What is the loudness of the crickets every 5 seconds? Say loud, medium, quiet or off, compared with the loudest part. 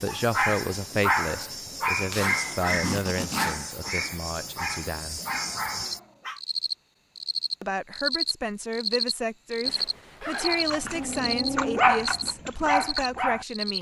medium, loud, loud.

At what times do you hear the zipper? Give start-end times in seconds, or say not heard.
2.1-3.6, 9.6-11.1.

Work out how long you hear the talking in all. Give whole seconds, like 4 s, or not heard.
11 s.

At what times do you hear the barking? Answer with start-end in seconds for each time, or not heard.
0.1-6.4, 10.4-13.7.